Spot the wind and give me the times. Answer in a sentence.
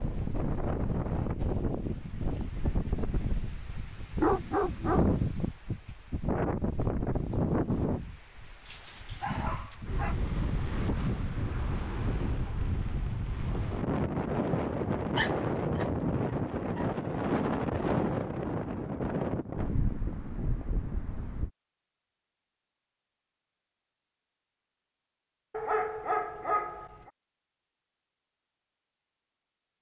You can hear the wind from 0.0 to 21.5 s.